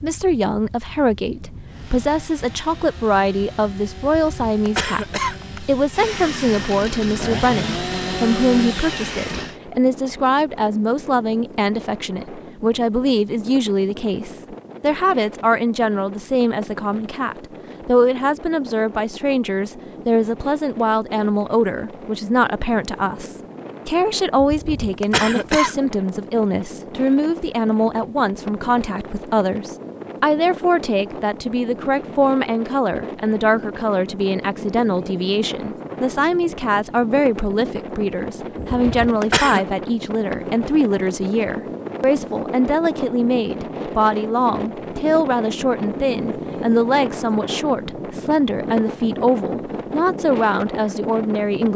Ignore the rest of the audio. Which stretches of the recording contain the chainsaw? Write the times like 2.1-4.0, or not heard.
1.6-9.6.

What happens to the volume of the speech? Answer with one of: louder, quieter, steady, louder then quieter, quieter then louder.
steady.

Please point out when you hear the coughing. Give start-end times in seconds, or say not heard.
4.2-5.8, 24.4-25.8, 38.6-39.6.